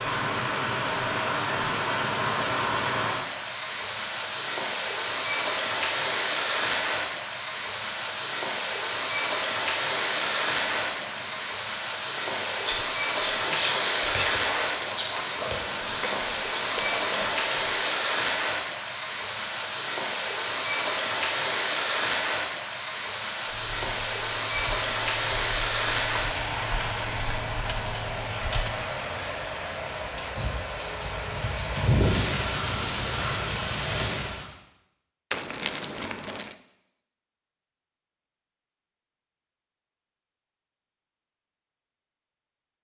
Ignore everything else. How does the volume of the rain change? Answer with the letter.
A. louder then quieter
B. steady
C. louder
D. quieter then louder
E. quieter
B.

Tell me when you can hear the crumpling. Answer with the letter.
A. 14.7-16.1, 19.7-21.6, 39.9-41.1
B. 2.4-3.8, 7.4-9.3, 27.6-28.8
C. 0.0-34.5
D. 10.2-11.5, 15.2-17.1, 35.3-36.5
D.